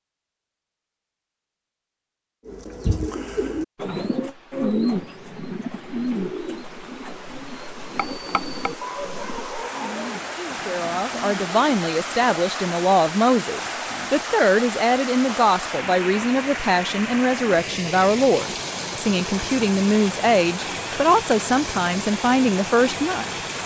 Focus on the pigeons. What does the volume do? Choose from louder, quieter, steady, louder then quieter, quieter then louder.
quieter.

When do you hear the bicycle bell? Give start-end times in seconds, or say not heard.
8.0-8.8.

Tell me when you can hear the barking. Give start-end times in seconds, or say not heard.
8.8-10.4.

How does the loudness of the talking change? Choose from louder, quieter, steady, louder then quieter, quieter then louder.
steady.